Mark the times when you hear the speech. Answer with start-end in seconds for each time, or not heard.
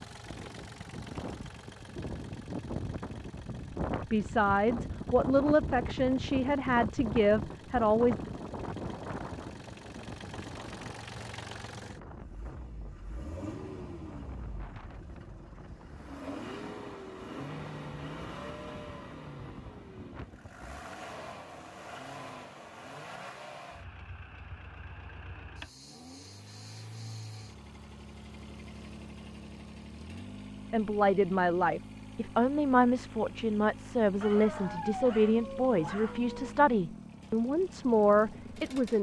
4.1-8.3, 30.7-38.9.